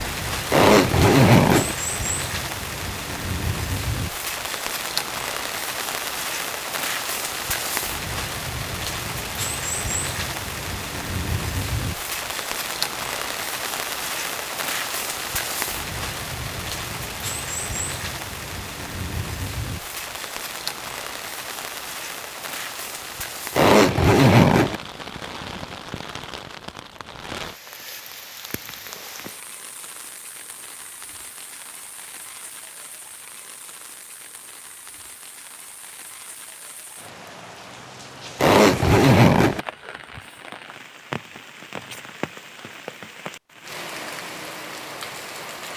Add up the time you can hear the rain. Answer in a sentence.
The rain can be heard for 46 seconds in total.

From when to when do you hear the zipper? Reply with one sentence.
You can hear the zipper from 0.5 to 1.8 s, from 23.6 to 24.8 s and from 38.4 to 39.6 s.